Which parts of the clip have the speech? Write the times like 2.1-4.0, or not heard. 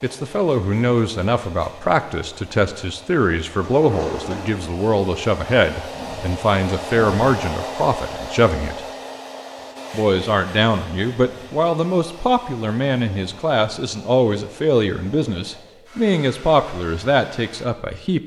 0.0-8.8, 9.9-18.2.